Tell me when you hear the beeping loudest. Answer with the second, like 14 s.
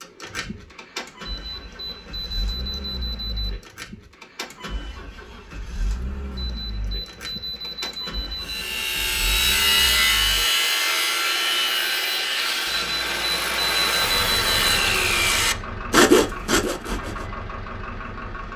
14 s.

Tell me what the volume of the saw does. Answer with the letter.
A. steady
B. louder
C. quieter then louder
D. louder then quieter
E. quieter
C.